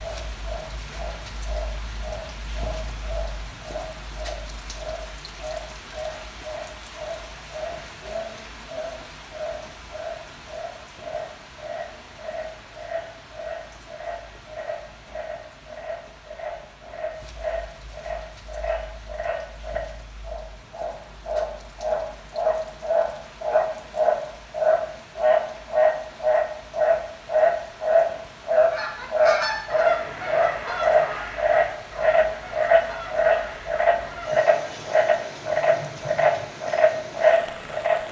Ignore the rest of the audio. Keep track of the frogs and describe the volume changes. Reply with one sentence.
The loudness of the frogs goes up.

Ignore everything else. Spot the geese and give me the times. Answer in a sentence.
The geese can be heard from 28.7 to 34.3 s.